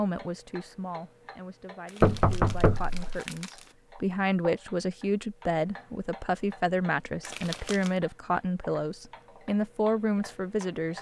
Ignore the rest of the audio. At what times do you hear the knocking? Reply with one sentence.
You can hear the knocking from 2.0 to 3.2 s.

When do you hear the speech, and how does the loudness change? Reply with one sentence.
The speech can be heard from 0.0 to 10.9 s, getting louder.